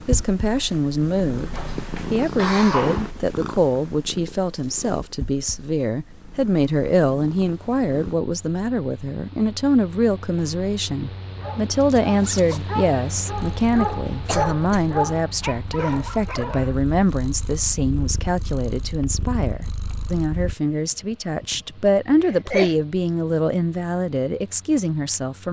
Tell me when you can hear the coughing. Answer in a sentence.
You can hear the coughing from 1.5 to 3.1 s, from 14.2 to 14.9 s and from 22.1 to 22.8 s.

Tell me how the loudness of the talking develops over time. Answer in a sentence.
The volume of the talking stays about the same.